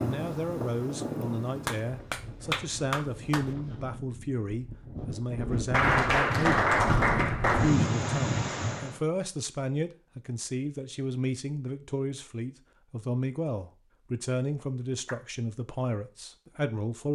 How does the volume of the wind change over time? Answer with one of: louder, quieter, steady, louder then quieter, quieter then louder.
quieter then louder.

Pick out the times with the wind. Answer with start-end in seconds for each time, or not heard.
0.0-9.0.